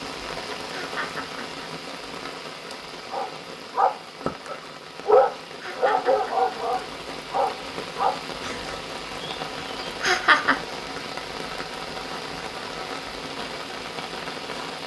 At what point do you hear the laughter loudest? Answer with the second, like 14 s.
10 s.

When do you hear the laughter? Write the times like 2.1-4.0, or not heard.
0.7-1.6, 5.6-6.5, 10.0-10.6.